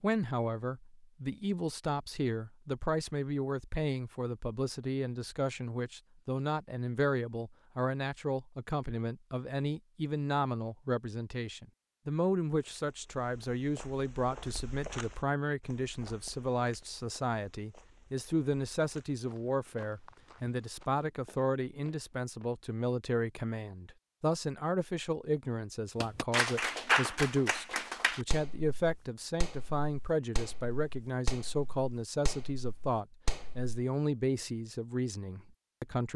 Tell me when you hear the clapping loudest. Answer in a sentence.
The loudest moment of the clapping is at 27 seconds.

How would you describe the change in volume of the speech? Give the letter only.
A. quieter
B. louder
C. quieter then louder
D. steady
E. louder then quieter
D.